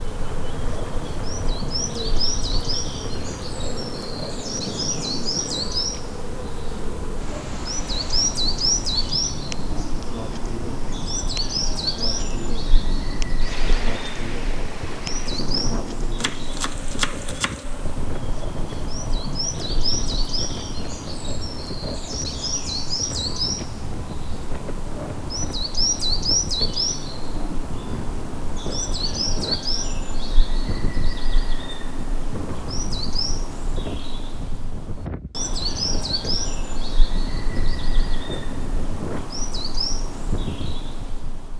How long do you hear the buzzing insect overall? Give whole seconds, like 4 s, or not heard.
18 s.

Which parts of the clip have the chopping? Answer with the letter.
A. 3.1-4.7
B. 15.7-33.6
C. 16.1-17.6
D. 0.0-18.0
C.